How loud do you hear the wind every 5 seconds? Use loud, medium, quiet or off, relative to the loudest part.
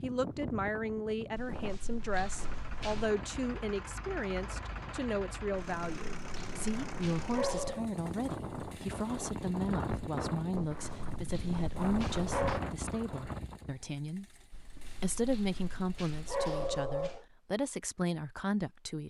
medium, loud, loud, off.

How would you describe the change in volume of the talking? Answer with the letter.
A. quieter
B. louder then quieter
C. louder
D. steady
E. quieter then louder
D.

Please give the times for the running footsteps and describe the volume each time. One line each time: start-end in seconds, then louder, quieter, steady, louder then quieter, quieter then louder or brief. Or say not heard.
not heard.